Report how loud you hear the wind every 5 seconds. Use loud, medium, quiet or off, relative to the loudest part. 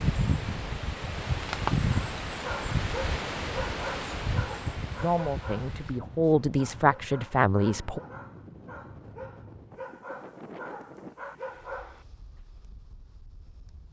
loud, quiet, quiet.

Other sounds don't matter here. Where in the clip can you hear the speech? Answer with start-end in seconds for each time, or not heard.
5.0-8.0.